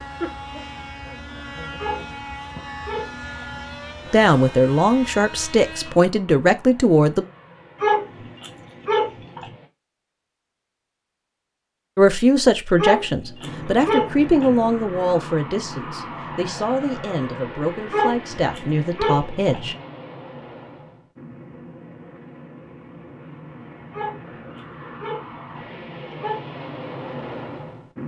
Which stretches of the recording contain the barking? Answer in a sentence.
You can hear the barking from 1.8 to 3.6 s, from 7.8 to 9.6 s, from 12.8 to 14.7 s, from 17.9 to 19.8 s and from 23.9 to 26.4 s.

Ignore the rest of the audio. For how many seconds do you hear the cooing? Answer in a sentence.
You can't hear the cooing here.